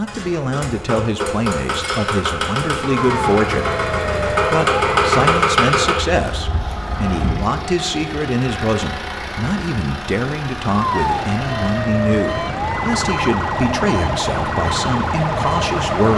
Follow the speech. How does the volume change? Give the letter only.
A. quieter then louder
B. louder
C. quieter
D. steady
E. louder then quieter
D.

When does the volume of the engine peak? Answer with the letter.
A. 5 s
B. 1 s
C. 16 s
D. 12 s
A.